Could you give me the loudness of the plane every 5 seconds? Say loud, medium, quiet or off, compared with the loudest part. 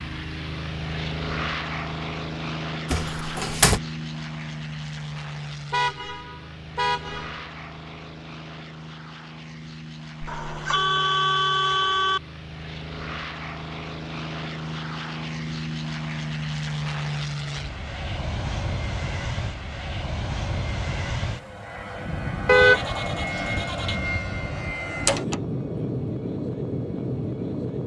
loud, medium, medium, loud, loud, loud.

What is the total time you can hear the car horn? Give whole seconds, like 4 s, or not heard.
5 s.